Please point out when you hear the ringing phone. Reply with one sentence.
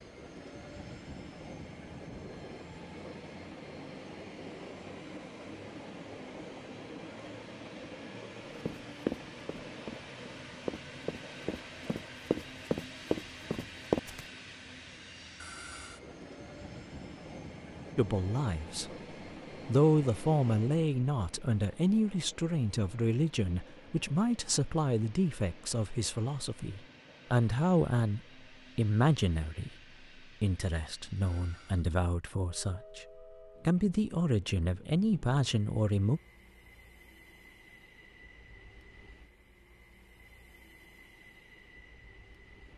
You can't hear the ringing phone here.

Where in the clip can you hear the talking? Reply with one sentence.
You can hear the talking from 17.9 to 18.9 s, from 19.6 to 29.8 s, from 30.4 to 33.0 s and from 33.6 to 36.2 s.